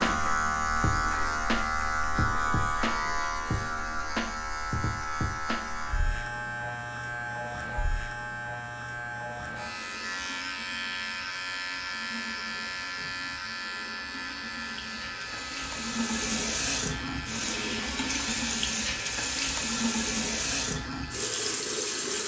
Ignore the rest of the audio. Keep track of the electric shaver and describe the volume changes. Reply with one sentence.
The volume of the electric shaver goes down.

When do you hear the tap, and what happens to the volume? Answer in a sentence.
You can hear the tap from 9.6 to 22.2 s, getting louder.